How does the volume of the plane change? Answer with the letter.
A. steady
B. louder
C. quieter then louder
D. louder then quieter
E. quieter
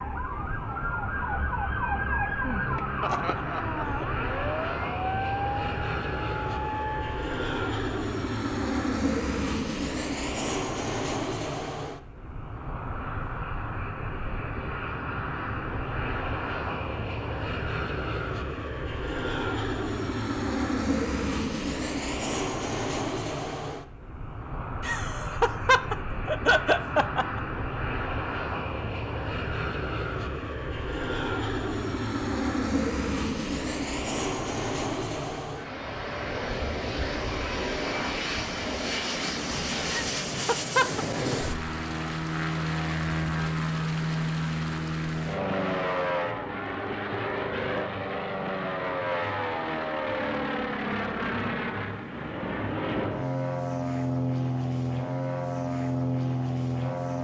A.